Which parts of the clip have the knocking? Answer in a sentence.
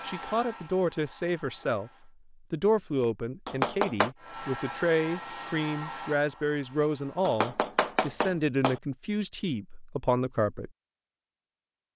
You can hear the knocking from 3.5 to 4.1 s and from 7.2 to 8.8 s.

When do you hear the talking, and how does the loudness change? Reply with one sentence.
The talking can be heard from 0.0 to 10.7 s, at a steady volume.